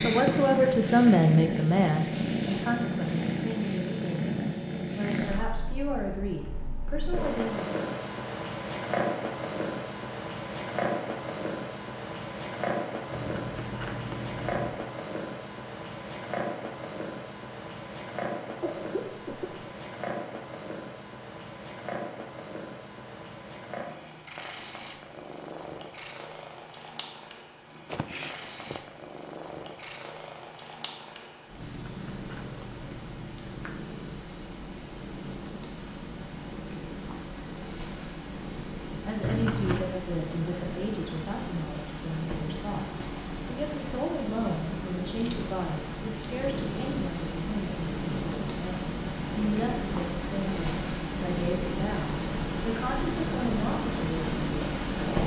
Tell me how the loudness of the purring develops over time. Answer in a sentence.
The volume of the purring goes down, then up.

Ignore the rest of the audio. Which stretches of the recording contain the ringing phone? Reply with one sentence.
The ringing phone can't be heard in this clip.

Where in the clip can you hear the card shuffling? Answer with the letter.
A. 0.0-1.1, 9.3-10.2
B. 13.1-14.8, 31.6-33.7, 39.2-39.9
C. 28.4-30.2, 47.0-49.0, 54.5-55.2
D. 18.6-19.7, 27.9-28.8
B.